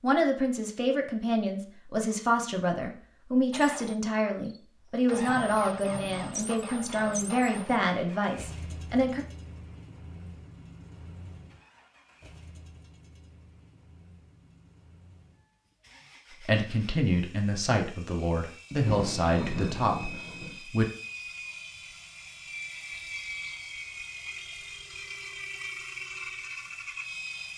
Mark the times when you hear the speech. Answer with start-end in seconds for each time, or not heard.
0.0-9.2, 16.4-20.9.